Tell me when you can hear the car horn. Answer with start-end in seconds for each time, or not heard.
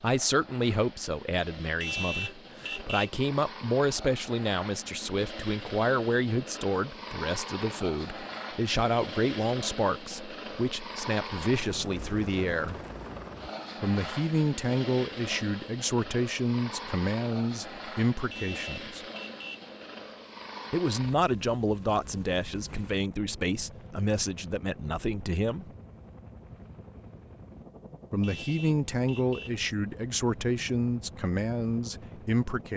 1.8-3.2, 18.3-19.7, 28.2-29.6.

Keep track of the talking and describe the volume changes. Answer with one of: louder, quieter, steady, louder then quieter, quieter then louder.
steady.